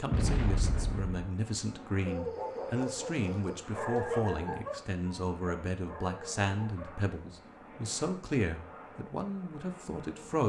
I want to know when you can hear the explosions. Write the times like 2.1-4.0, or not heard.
0.1-1.2.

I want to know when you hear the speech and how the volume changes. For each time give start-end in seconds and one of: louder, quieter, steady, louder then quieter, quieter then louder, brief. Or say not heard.
0.0-10.4 steady.